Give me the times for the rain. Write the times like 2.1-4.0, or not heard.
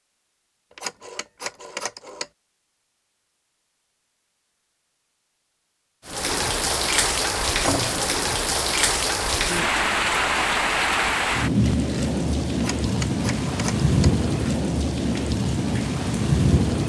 6.0-16.8.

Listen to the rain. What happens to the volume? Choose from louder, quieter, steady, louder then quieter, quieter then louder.
steady.